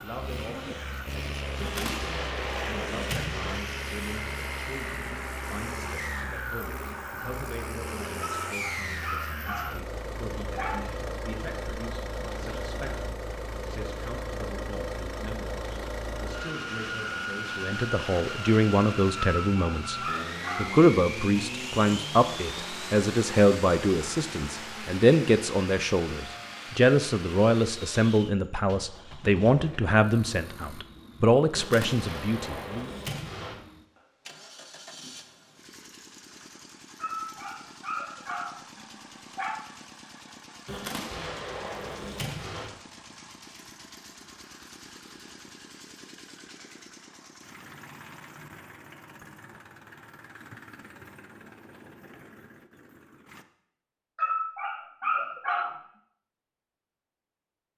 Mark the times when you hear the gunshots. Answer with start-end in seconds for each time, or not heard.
1.6-3.6, 31.6-33.5, 40.6-42.7.